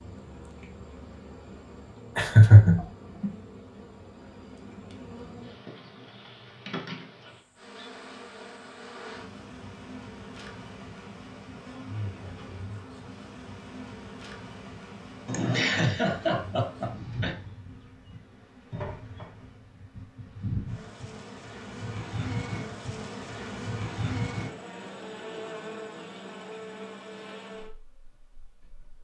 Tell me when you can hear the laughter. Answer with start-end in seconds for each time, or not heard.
2.1-2.9, 15.2-17.4.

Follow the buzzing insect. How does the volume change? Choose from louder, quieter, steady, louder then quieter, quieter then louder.
louder.